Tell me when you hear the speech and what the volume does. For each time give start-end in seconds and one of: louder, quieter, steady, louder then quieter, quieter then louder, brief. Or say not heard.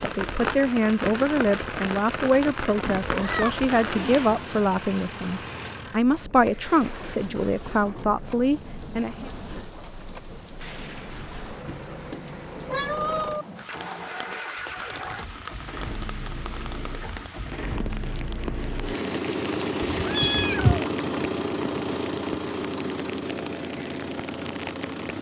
0.0-9.3 steady.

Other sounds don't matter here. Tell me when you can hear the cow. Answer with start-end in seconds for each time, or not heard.
not heard.